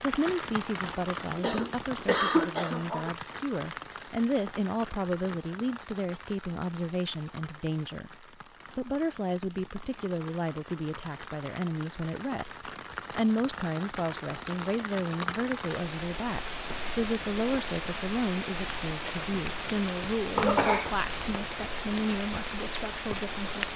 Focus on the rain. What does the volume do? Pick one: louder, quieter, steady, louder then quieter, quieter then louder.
quieter then louder.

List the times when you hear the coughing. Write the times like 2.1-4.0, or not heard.
1.4-3.1, 20.4-21.3.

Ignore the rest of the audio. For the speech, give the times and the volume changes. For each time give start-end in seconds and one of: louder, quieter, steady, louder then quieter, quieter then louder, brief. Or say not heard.
0.0-23.6 steady.